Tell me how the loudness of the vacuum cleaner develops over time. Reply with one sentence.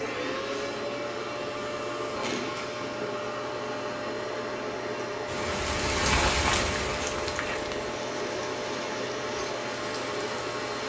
The loudness of the vacuum cleaner stays about the same.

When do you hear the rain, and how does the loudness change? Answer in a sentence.
You can hear the rain from 5.2 to 10.8 s, getting quieter.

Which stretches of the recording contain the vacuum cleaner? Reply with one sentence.
You can hear the vacuum cleaner from 0.0 to 10.8 s.